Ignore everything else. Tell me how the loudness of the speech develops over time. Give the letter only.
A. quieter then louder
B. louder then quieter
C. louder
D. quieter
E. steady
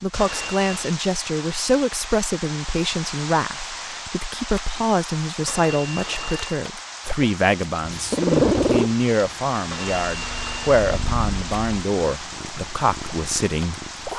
E.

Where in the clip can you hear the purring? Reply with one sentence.
The purring can be heard from 7.8 to 14.1 s.